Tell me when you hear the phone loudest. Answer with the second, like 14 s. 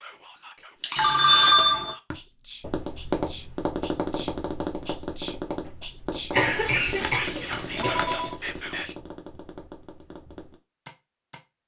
1 s.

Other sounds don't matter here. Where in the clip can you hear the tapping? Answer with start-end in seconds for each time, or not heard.
2.1-11.4.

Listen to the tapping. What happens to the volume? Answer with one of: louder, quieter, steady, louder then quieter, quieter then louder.
quieter.